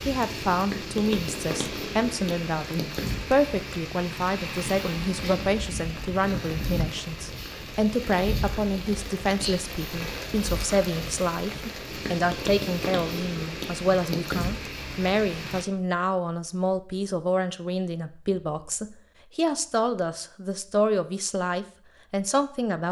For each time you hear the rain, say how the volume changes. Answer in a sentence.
You can hear the rain from 0.0 to 15.7 s, at a steady volume.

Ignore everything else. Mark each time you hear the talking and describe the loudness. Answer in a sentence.
You can hear the talking from 0.1 to 22.8 s, at a steady volume.